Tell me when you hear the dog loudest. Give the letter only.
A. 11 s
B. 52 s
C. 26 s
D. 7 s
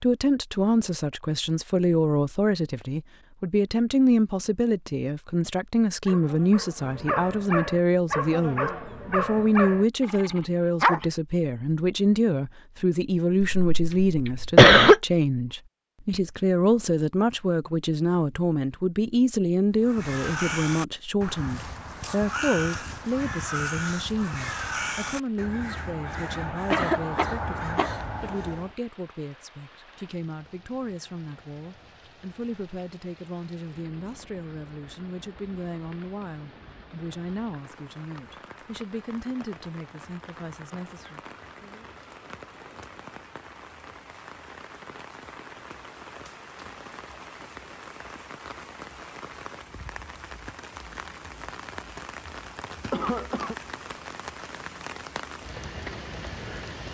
A.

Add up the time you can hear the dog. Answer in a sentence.
The dog can be heard for 5 seconds in total.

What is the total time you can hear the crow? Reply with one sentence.
You can hear the crow for 9 seconds altogether.